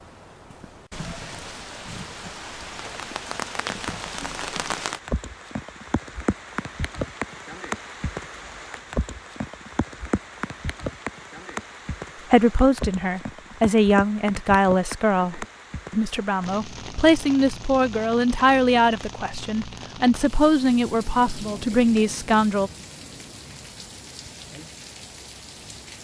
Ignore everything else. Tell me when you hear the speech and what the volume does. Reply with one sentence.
The speech can be heard from 12.3 to 22.7 s, at a steady volume.